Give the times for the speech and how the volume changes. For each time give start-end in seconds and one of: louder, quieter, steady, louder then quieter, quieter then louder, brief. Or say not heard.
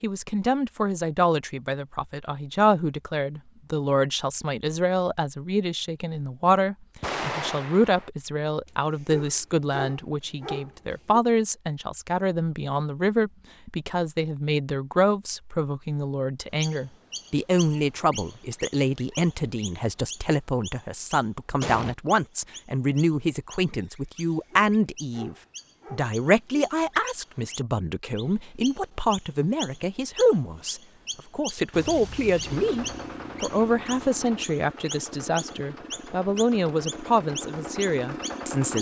0.0-38.7 steady.